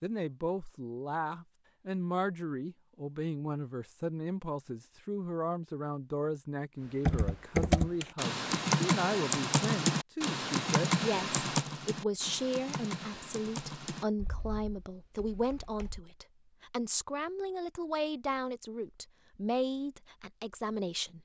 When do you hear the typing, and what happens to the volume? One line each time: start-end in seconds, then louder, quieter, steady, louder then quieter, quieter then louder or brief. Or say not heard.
7.0-16.1 quieter.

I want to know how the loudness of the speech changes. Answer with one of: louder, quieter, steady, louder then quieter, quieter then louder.
steady.